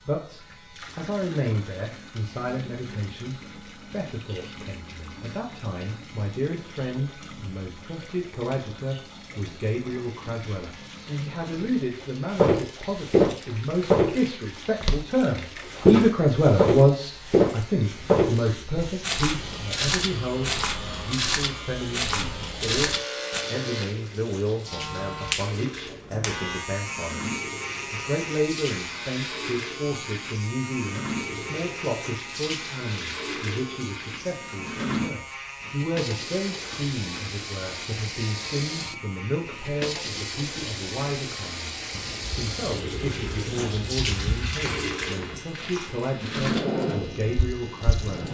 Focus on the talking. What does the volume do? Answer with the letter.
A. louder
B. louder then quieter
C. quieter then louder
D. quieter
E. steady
B.